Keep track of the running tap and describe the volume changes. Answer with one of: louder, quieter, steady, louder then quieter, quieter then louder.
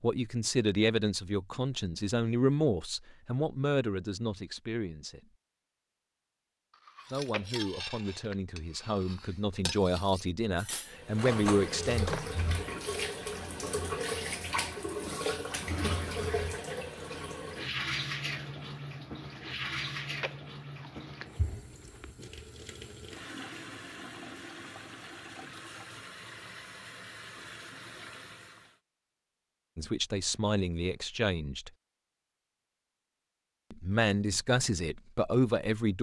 quieter.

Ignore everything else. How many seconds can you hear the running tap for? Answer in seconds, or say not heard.
18 s.